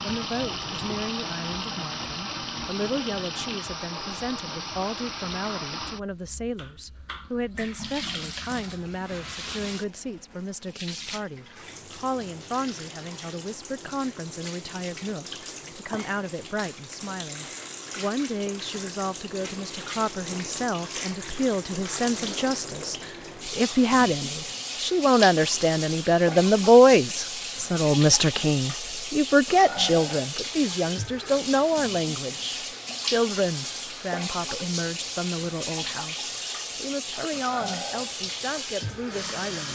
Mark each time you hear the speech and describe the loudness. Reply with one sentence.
You can hear the speech from 0.0 to 39.7 s, getting louder then quieter.